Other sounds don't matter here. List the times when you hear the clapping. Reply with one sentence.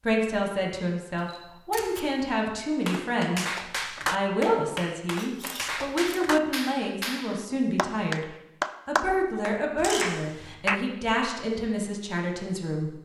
The clapping can be heard from 2.9 to 10.8 s.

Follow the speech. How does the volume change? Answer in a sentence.
The loudness of the speech stays about the same.